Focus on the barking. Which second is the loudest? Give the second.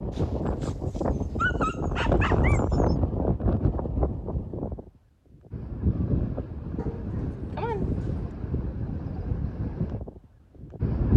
2 s.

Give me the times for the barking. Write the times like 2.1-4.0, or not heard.
0.1-3.0, 6.8-8.3.